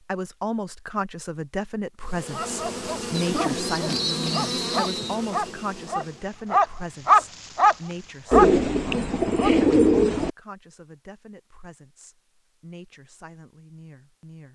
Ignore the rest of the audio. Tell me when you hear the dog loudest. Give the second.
7 s.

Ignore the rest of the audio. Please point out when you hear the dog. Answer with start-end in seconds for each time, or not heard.
2.3-9.7.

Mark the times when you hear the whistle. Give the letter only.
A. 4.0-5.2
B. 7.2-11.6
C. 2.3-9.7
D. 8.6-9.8
A.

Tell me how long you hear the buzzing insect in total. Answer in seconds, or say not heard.
4 s.